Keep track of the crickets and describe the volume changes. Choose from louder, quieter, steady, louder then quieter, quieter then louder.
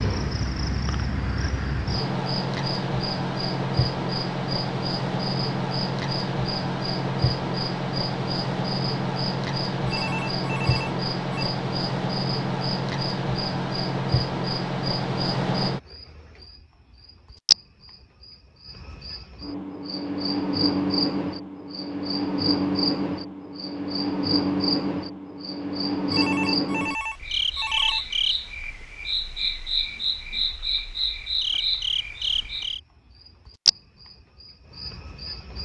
steady.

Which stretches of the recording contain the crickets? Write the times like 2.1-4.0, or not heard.
0.0-35.5.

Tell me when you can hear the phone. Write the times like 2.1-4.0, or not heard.
9.8-11.5, 26.1-28.1.